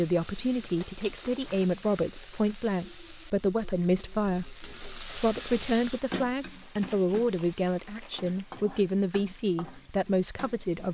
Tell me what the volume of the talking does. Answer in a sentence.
The volume of the talking stays about the same.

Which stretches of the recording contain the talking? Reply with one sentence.
The talking can be heard from 0.0 to 10.9 s.